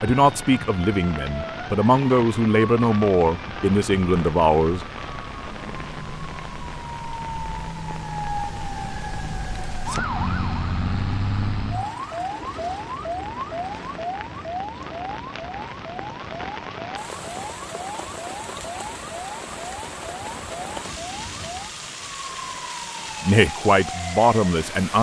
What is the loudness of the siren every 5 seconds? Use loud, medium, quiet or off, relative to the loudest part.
medium, loud, loud, medium, medium.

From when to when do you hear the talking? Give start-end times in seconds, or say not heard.
0.0-4.8, 23.2-24.9.